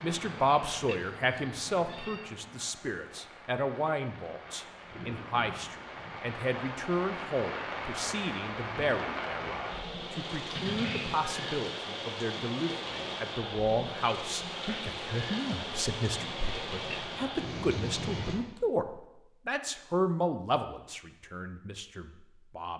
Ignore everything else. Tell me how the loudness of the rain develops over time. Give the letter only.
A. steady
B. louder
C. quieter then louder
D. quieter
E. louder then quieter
B.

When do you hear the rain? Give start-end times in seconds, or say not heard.
0.0-18.4.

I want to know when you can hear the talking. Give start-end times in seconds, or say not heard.
0.0-22.7.